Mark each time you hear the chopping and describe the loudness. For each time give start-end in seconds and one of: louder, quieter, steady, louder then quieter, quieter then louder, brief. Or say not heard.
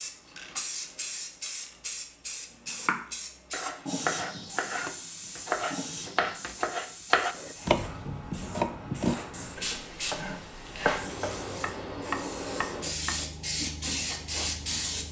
2.6-13.2 steady.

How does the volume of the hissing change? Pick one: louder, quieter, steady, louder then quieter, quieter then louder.
quieter then louder.